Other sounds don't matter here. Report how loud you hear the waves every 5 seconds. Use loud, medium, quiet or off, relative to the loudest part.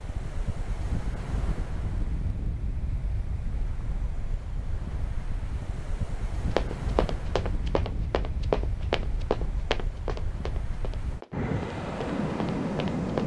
medium, medium, loud.